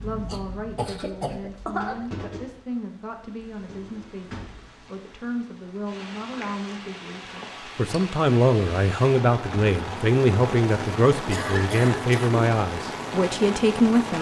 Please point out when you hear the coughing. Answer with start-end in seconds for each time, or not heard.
0.2-2.0, 11.3-12.4.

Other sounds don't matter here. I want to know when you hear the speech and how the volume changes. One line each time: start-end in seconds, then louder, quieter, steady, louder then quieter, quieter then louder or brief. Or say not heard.
0.0-14.1 louder.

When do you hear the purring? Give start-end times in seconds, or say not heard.
not heard.